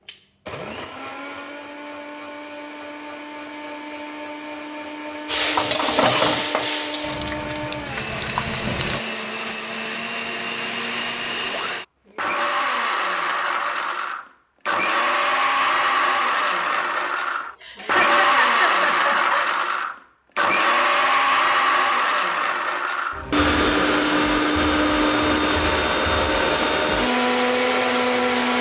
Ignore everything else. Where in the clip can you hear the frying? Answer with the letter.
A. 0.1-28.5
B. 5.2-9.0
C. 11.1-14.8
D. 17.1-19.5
B.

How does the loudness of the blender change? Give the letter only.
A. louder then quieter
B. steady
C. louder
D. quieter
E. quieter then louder
C.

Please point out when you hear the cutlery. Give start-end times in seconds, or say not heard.
not heard.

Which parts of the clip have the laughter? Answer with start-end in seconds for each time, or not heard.
17.1-19.5.